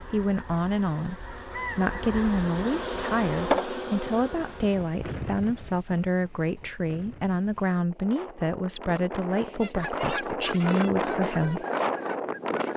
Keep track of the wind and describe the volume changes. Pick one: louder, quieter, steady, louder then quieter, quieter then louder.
quieter then louder.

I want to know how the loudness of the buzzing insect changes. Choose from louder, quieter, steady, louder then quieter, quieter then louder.
louder then quieter.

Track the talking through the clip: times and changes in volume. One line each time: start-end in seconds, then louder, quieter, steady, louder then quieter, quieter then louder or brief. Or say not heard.
0.0-11.7 steady.